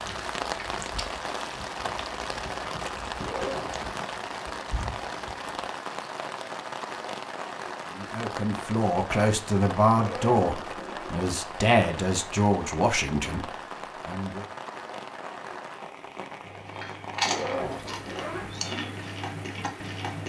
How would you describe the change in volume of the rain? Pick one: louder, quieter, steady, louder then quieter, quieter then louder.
quieter.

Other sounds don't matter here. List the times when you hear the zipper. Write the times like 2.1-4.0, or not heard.
3.1-3.9, 9.9-11.2, 17.2-18.6.